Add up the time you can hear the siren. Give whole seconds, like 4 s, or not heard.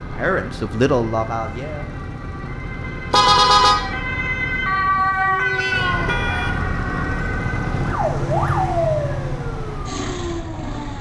11 s.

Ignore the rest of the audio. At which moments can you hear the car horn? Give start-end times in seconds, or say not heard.
3.1-3.8, 5.7-6.5.